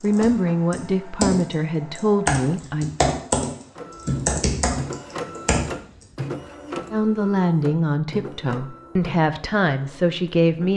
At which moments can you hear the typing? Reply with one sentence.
You can hear the typing from 0.0 to 5.7 s.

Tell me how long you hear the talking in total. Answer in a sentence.
The talking can be heard for 7 seconds in total.